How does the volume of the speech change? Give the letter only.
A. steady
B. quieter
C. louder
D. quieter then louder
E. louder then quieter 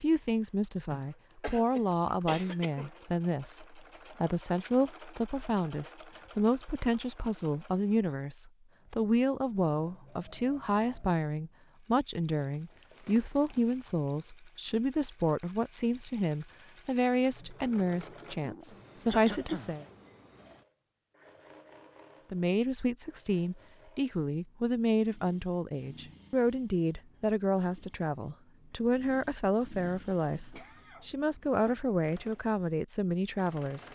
A.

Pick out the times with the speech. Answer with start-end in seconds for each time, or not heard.
0.0-19.9, 22.3-33.9.